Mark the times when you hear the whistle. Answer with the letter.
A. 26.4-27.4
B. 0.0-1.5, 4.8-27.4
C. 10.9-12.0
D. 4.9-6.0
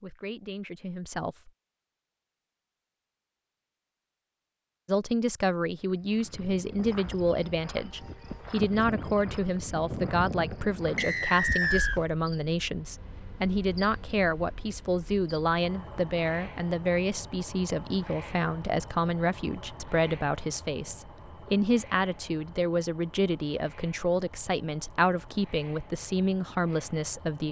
C.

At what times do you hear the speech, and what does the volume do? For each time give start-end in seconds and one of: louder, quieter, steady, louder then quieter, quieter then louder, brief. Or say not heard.
0.0-1.5 brief
4.8-27.4 steady.